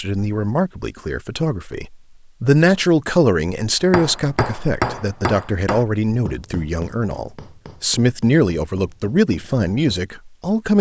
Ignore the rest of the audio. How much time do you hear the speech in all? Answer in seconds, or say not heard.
11 s.